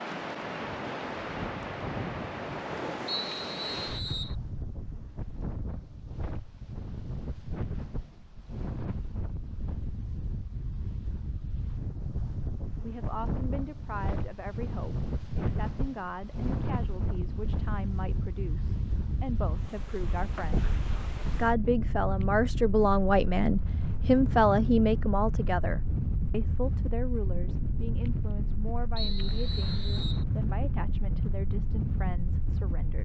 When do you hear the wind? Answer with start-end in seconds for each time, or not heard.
0.0-33.0.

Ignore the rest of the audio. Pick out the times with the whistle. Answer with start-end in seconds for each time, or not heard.
3.0-4.3, 28.9-30.2.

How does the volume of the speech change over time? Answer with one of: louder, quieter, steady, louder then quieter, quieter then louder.
louder then quieter.